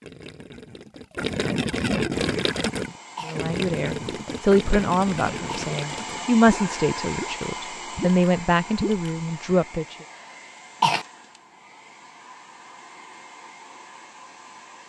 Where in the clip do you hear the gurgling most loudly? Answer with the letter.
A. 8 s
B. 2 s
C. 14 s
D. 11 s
B.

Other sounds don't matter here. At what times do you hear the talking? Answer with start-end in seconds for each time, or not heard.
3.2-9.9.